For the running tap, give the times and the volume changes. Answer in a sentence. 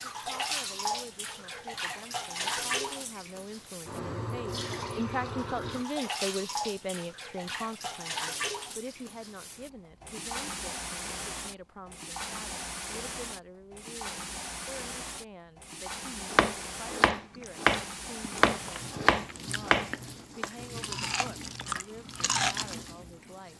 You can hear the running tap from 0.0 to 23.5 s, getting quieter.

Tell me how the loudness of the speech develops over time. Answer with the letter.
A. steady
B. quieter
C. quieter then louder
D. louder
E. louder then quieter
E.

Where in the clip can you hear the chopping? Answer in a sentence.
You can hear the chopping from 16.3 to 20.5 s.